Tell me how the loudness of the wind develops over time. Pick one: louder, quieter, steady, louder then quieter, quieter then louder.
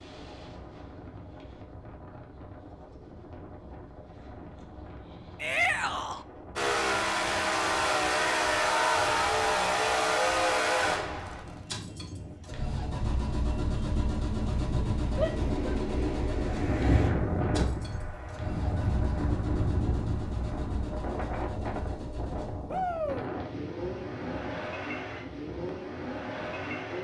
louder then quieter.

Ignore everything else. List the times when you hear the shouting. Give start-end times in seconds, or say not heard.
5.3-6.2, 15.2-15.8, 22.6-23.3.